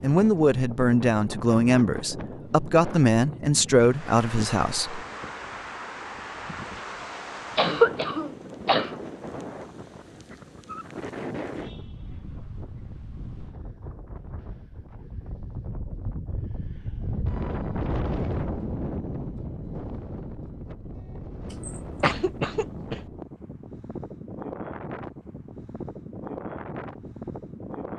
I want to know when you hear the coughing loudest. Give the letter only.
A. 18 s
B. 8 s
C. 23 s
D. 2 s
B.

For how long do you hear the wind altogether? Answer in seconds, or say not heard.
28 s.